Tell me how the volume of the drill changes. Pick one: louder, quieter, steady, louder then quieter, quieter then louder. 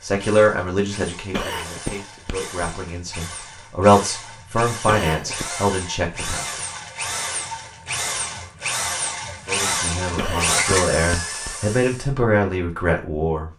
louder.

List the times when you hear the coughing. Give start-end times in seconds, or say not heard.
1.3-2.7, 4.8-5.5, 10.2-11.6.